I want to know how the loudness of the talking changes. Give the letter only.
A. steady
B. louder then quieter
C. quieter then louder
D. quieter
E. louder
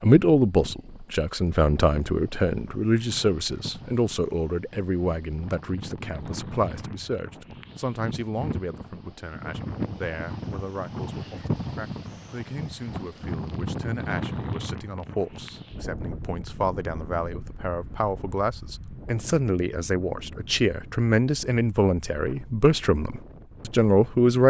C.